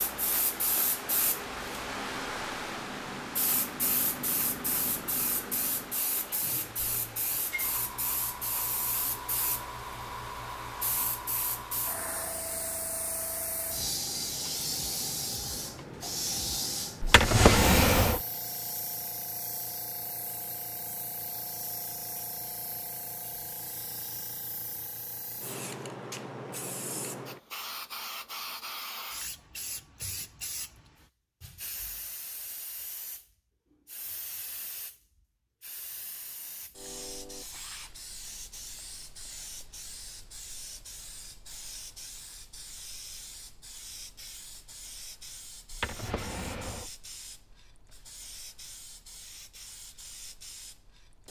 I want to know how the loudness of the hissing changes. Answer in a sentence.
The loudness of the hissing goes down.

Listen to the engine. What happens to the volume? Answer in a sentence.
The loudness of the engine goes up, then down.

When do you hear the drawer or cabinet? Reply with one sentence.
The drawer or cabinet can be heard from 17.0 to 18.2 s and from 45.7 to 46.9 s.